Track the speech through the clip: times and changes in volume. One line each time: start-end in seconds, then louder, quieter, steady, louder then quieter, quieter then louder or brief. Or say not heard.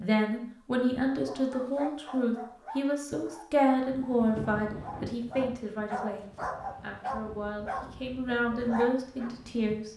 0.0-9.9 quieter then louder.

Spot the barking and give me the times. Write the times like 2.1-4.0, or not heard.
1.1-9.3.